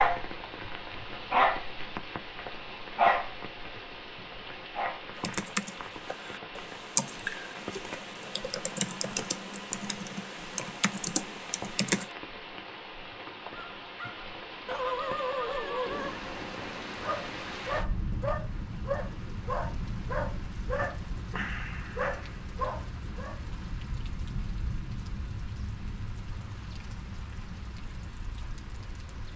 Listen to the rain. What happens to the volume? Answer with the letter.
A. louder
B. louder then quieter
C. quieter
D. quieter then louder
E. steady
E.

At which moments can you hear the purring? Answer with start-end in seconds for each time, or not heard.
not heard.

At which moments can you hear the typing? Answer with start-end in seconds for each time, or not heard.
5.2-12.1.